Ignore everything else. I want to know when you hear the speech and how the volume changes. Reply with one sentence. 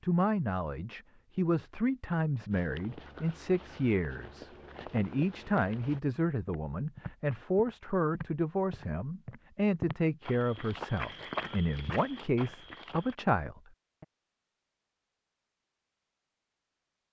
The speech can be heard from 0.0 to 14.1 s, at a steady volume.